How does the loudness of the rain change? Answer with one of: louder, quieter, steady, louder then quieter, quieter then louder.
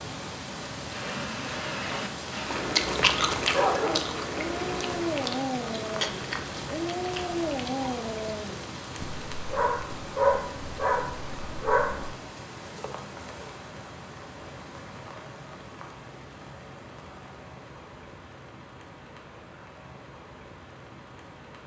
quieter.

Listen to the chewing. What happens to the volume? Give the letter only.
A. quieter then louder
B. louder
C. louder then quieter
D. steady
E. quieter
E.